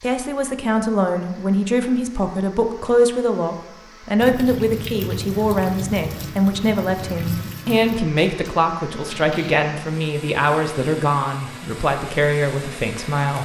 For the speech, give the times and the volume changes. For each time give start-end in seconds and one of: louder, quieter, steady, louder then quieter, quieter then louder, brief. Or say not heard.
0.0-13.4 steady.